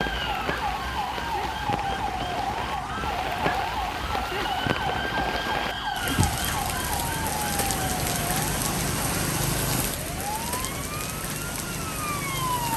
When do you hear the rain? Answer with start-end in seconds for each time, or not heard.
0.0-12.7.